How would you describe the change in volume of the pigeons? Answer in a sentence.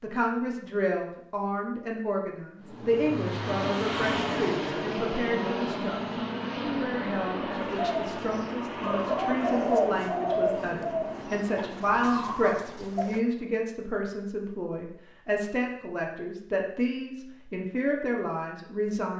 The volume of the pigeons goes up, then down.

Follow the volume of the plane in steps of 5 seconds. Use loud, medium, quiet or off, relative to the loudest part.
loud, loud, medium, off.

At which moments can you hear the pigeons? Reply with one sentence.
The pigeons can be heard from 7.5 to 13.2 s.